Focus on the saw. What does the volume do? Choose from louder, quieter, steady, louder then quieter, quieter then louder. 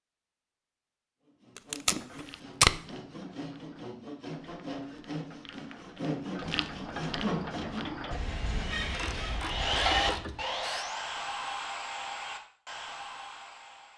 louder then quieter.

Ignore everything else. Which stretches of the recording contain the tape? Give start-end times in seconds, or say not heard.
1.6-2.8.